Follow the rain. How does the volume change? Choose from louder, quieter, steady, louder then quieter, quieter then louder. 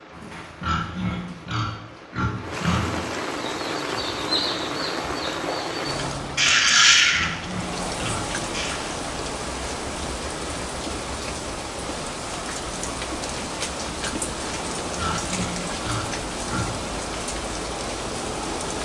steady.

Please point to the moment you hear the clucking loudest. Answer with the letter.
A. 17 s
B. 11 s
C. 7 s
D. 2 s
C.